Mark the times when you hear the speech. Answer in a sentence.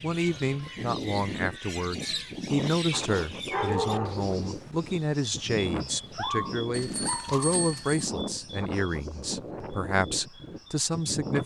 The speech can be heard from 0.0 to 11.4 s.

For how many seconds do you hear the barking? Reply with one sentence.
The barking can be heard for 3 seconds in total.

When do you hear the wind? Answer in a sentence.
You can hear the wind from 0.0 to 11.4 s.